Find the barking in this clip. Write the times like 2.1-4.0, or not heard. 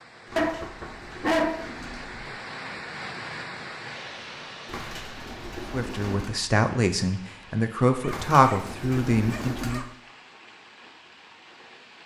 0.3-2.4, 8.0-9.8.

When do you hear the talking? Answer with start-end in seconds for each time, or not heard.
5.7-9.8.